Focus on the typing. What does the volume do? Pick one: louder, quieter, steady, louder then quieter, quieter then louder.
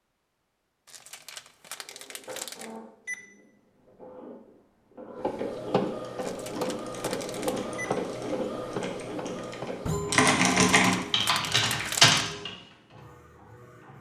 louder.